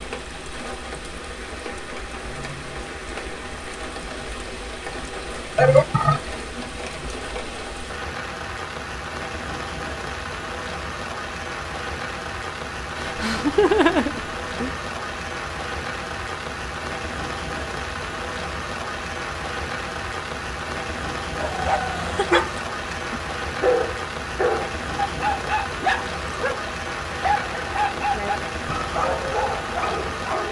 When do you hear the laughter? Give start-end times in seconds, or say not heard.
5.5-7.0, 13.0-14.8, 22.0-22.6.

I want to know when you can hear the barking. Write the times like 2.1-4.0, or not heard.
21.3-30.4.